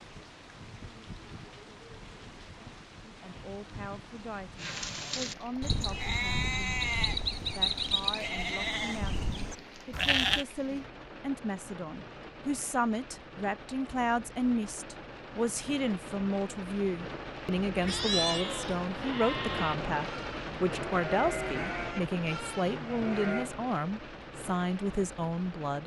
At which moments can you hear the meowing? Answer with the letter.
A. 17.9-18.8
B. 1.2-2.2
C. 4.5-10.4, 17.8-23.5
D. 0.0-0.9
A.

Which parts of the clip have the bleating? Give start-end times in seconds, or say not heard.
4.5-10.4, 17.8-23.5.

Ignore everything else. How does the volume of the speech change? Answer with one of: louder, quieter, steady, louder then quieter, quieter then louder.
louder.